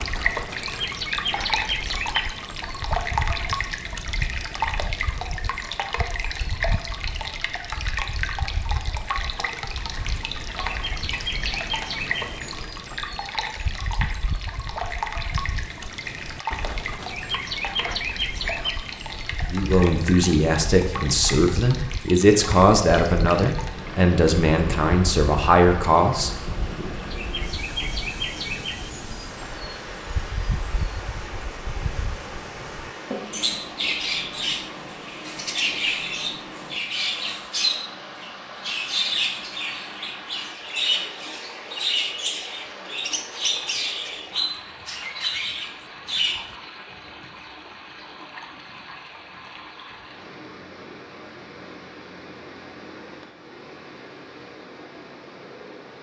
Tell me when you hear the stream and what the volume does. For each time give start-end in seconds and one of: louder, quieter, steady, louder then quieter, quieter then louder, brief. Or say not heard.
0.0-55.9 quieter.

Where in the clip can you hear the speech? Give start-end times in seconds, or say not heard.
19.4-26.9.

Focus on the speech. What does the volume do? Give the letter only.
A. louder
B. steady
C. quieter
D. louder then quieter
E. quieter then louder
B.